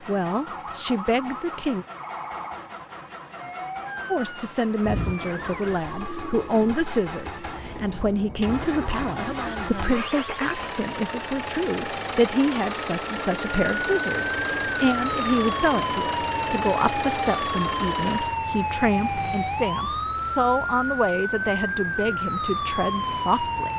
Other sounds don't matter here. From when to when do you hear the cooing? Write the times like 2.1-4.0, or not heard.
4.8-6.8.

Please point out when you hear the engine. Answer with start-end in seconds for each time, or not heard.
0.0-18.4.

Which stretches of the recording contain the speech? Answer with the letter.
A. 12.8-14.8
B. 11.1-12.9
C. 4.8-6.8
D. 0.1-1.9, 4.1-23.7
D.